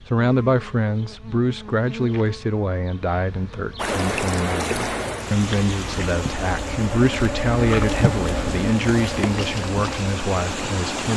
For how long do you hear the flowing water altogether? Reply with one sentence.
You can hear the flowing water for 7 seconds altogether.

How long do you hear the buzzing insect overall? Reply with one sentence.
The buzzing insect can be heard for 11 seconds in total.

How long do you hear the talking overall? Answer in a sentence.
The talking can be heard for 11 seconds in total.